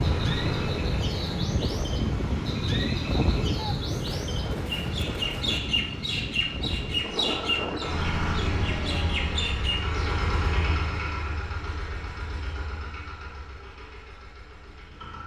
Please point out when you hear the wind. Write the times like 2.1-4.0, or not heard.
0.0-8.1.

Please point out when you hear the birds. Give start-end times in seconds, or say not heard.
0.0-10.2.